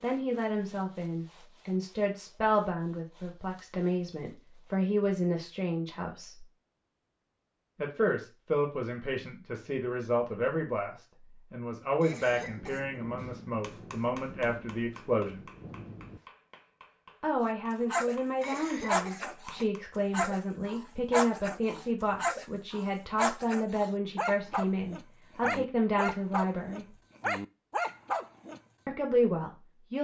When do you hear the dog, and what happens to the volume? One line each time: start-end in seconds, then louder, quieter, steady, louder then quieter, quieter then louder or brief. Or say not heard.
17.7-28.6 steady.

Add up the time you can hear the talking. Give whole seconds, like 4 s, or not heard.
25 s.